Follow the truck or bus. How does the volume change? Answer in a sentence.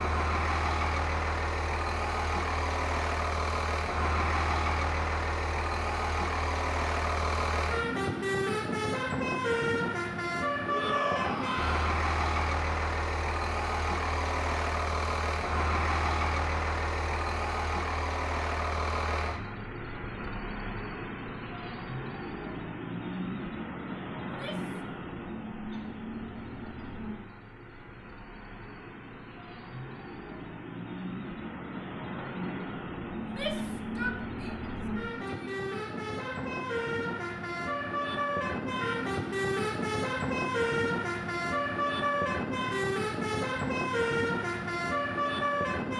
The volume of the truck or bus goes down, then up.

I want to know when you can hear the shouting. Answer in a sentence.
You can hear the shouting from 10.7 to 11.9 s, from 24.2 to 24.8 s and from 33.1 to 35.5 s.